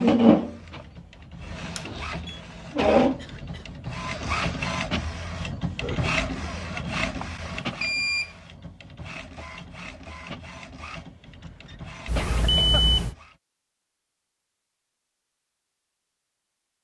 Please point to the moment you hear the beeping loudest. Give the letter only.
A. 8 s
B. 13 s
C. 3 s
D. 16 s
B.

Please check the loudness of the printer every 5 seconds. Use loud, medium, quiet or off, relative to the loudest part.
loud, medium, quiet, off.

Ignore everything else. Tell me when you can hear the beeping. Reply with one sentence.
The beeping can be heard from 1.8 to 2.4 s, from 7.2 to 8.4 s and from 12.1 to 13.2 s.